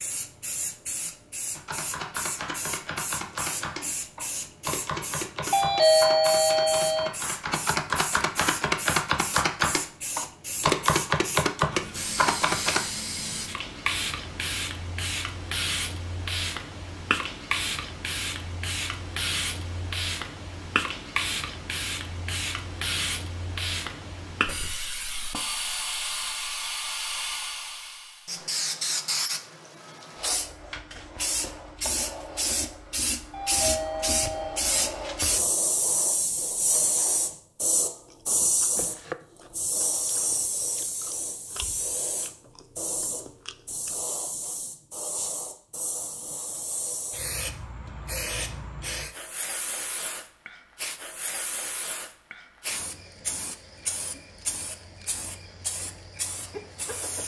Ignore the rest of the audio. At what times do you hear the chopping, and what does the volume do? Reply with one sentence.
You can hear the chopping from 1.6 to 12.8 s, getting louder.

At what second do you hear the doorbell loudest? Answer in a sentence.
The volume of the doorbell peaks at 6 seconds.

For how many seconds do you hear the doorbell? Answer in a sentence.
The doorbell can be heard for 3 seconds in total.